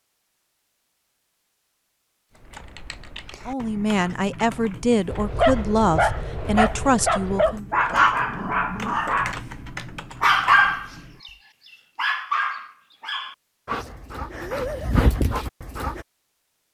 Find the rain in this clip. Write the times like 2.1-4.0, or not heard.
not heard.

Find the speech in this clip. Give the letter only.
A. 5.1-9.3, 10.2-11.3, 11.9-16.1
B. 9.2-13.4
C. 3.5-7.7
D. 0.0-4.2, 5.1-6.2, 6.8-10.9
C.